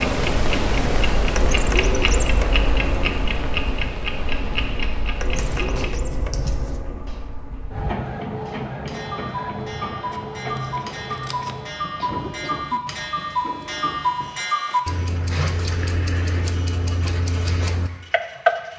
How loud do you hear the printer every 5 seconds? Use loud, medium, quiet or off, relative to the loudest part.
loud, loud, medium, quiet.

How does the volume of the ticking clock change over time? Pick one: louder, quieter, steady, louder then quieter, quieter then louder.
quieter then louder.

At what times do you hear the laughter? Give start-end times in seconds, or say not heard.
12.0-12.8.